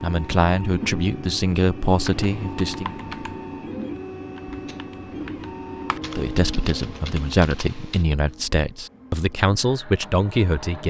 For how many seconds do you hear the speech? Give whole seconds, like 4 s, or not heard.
8 s.